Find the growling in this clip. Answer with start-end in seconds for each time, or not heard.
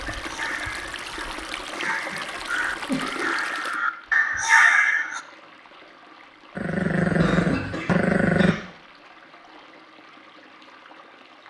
6.5-8.6.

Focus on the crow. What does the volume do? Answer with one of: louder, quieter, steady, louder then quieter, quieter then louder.
louder.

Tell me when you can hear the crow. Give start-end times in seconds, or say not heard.
0.1-5.2.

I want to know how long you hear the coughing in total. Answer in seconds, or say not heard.
3 s.